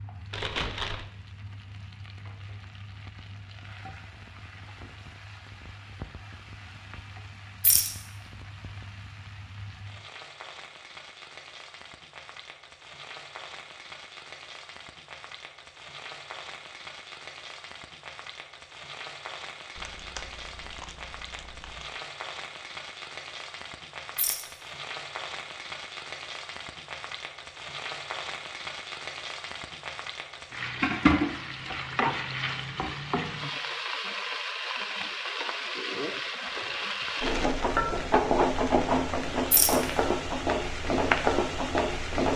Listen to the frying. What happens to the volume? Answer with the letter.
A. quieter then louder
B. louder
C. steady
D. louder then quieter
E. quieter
B.